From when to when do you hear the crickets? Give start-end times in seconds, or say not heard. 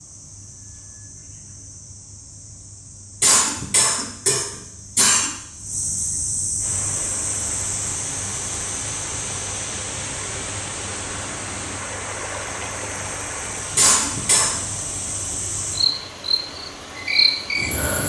0.0-18.0.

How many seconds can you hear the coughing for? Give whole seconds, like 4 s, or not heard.
3 s.